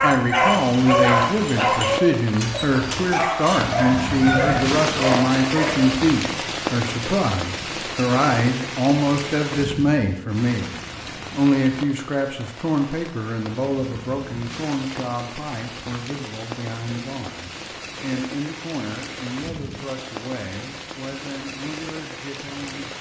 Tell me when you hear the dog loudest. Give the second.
1 s.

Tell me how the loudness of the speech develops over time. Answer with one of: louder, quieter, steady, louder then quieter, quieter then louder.
quieter.